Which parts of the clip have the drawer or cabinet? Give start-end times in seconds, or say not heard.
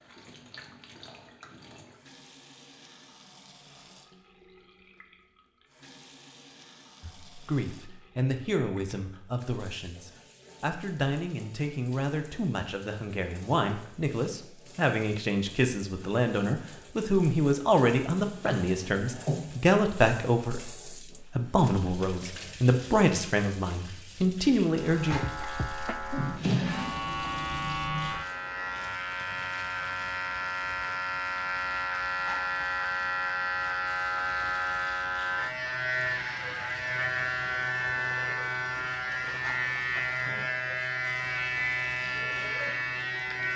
18.1-19.4, 26.1-26.9.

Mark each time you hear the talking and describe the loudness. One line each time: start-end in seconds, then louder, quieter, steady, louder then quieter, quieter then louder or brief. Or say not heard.
7.0-25.2 louder.